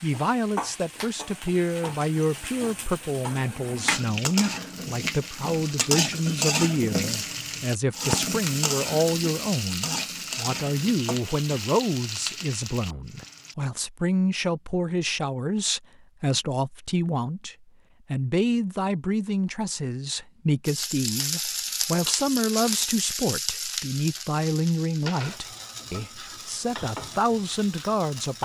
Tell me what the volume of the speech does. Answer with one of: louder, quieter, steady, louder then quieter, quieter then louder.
steady.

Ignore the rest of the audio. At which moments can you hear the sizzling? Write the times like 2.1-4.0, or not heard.
0.0-13.6, 20.6-28.4.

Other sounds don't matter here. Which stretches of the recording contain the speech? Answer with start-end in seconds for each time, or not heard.
0.0-28.4.